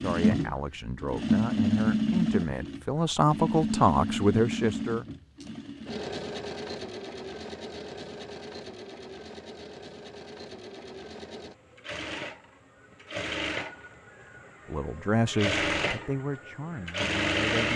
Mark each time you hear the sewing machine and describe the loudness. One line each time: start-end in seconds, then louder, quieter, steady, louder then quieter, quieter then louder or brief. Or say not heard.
0.0-17.7 quieter then louder.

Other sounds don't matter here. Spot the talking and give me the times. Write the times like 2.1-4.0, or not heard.
0.0-5.0, 14.7-17.7.